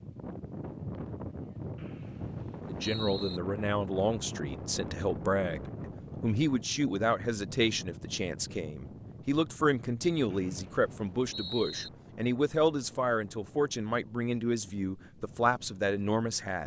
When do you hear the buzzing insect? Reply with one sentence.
The buzzing insect can't be heard in this clip.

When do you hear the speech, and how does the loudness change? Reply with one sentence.
You can hear the speech from 2.6 to 16.6 s, at a steady volume.